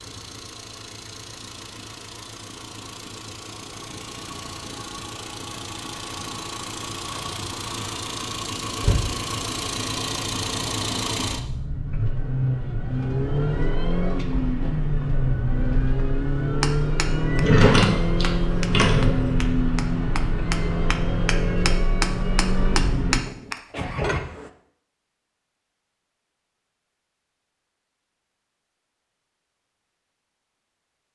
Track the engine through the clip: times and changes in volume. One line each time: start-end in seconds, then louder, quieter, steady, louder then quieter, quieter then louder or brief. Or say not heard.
0.0-24.2 louder.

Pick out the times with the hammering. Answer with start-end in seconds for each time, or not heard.
16.4-24.5.